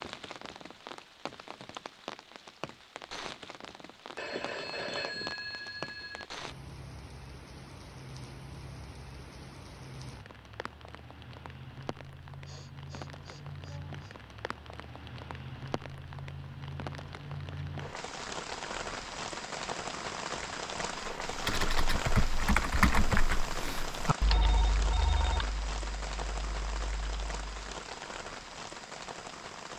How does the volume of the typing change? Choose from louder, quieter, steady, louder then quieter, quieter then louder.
quieter.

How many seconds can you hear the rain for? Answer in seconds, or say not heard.
30 s.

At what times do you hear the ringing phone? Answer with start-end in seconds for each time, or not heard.
4.2-6.2, 24.3-25.4.